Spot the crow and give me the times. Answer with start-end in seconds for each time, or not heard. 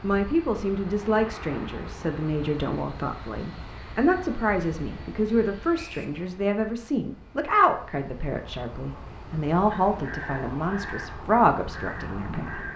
9.7-12.7.